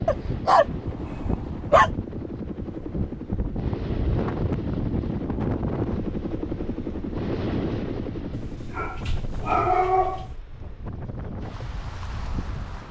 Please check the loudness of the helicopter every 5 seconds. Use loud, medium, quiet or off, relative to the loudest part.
loud, loud, off.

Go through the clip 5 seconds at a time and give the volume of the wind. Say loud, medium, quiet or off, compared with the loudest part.
loud, loud, medium.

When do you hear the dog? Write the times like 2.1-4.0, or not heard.
0.1-1.9, 8.3-10.3.